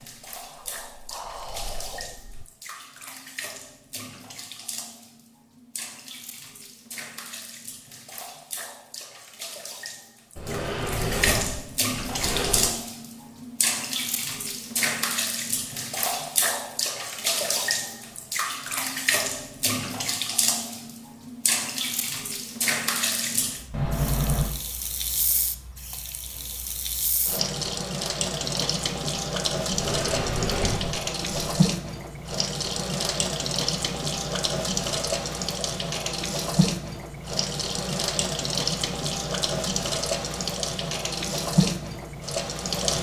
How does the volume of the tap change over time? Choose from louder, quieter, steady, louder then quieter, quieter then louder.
louder.